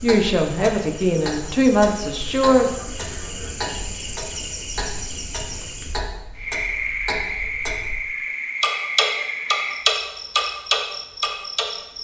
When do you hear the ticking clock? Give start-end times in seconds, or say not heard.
0.0-8.0, 8.6-11.7.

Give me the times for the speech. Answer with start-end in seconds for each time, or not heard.
0.0-2.8.